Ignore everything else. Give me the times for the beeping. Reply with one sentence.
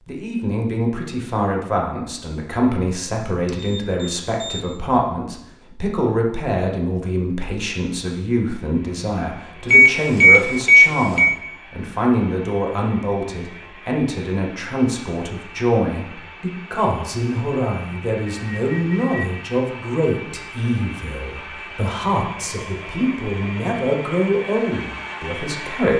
The beeping can be heard from 3.5 to 4.6 s, from 9.7 to 11.3 s and from 18.3 to 19.2 s.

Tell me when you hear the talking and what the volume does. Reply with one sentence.
You can hear the talking from 0.1 to 25.9 s, at a steady volume.